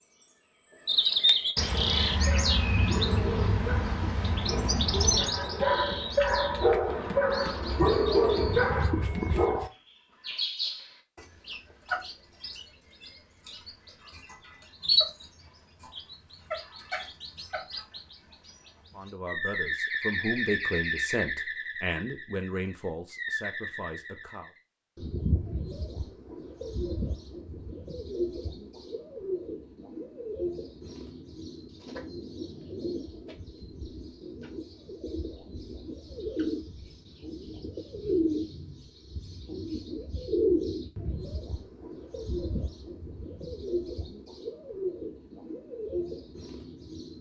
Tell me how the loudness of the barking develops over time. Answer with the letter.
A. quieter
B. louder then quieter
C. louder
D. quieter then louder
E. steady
C.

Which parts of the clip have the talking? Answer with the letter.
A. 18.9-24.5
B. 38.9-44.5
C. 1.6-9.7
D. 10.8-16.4
A.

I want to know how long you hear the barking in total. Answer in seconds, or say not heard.
8 s.